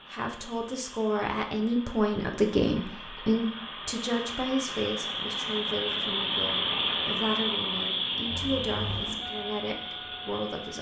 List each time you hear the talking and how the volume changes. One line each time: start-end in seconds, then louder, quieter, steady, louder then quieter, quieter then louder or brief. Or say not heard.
0.1-10.7 quieter.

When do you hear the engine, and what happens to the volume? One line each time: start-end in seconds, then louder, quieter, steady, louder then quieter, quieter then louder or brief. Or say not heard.
0.0-10.7 louder then quieter.